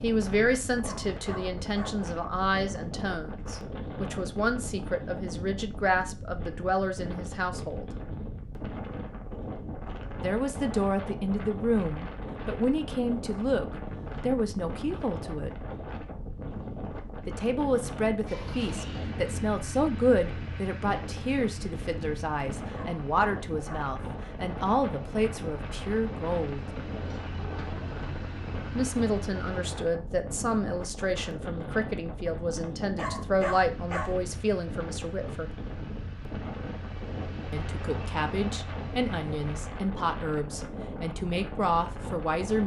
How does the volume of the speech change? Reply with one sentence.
The volume of the speech stays about the same.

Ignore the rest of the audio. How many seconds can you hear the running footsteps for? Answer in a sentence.
You can't hear the running footsteps here.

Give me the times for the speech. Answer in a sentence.
The speech can be heard from 0.0 to 7.9 s, from 10.2 to 15.7 s, from 17.2 to 26.6 s, from 28.8 to 35.5 s and from 37.5 to 42.6 s.